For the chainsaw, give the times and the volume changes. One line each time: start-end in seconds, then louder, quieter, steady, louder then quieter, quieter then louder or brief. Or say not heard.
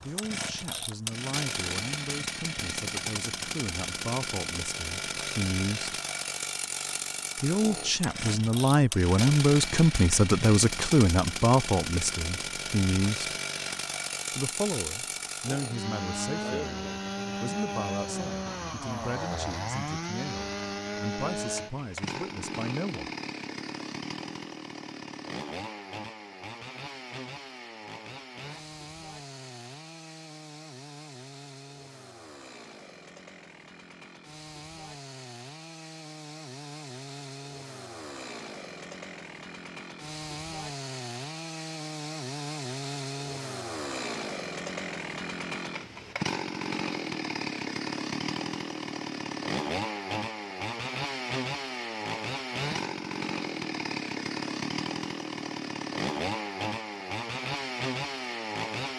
0.0-58.9 quieter then louder.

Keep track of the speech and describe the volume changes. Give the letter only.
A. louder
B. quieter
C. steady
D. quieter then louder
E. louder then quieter
E.